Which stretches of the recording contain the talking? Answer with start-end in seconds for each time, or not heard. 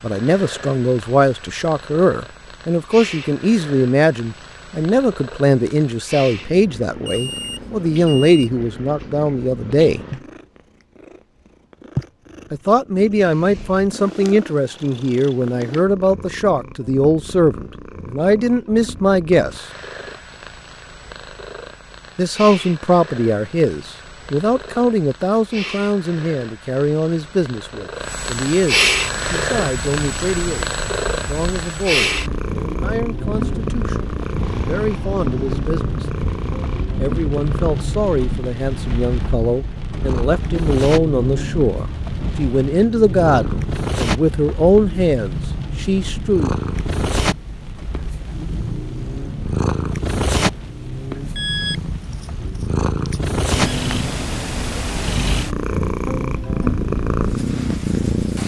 0.0-10.0, 12.5-19.6, 22.1-36.0, 37.0-46.5.